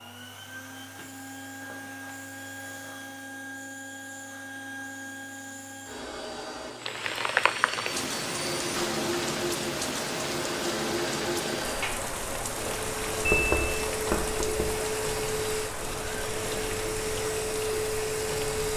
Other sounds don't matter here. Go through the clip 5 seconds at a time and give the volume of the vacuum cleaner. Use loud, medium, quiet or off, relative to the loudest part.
medium, medium, loud, loud.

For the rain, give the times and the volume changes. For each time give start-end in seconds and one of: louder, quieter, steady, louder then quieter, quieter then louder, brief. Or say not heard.
6.8-18.7 quieter.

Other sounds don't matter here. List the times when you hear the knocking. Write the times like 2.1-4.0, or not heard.
13.2-14.8.